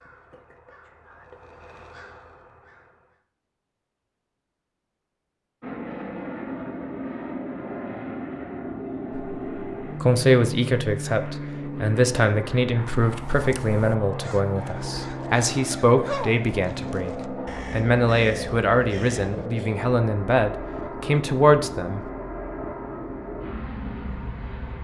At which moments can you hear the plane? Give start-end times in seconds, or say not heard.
5.6-24.7.